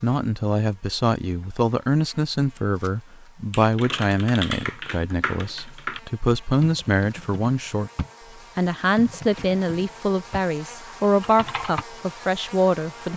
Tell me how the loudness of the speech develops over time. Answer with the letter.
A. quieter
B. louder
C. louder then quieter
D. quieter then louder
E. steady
E.